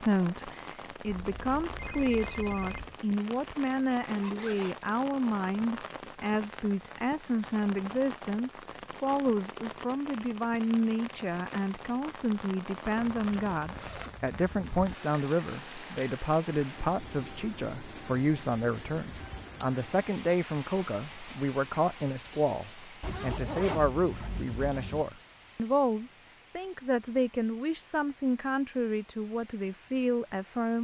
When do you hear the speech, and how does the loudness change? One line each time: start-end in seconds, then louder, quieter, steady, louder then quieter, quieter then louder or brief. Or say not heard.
0.0-30.7 steady.